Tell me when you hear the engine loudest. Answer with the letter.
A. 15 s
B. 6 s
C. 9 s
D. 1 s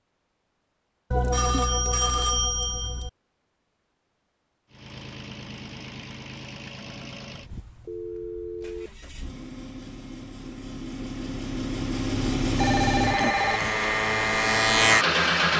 A.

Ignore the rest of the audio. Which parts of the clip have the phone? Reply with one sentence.
You can hear the phone from 1.1 to 3.1 s, from 7.8 to 8.9 s and from 12.6 to 13.8 s.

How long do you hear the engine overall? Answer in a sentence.
You can hear the engine for 11 seconds altogether.